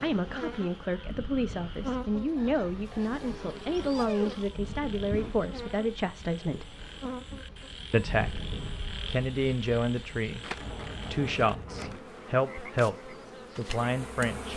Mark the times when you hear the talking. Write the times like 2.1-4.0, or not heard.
0.0-6.8, 7.9-14.5.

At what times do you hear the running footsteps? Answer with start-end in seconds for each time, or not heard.
not heard.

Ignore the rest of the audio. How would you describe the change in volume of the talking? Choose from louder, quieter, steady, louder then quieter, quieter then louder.
steady.